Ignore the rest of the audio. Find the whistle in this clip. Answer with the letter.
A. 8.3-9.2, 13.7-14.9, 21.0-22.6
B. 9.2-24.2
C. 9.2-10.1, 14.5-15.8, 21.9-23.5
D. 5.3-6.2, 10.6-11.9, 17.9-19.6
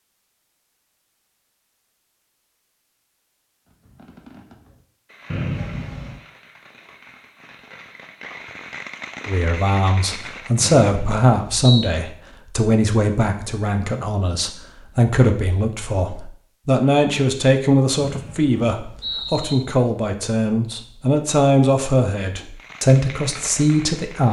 D.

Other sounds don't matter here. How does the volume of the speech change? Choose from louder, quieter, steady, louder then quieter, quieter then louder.
steady.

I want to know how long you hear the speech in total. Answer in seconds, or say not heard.
15 s.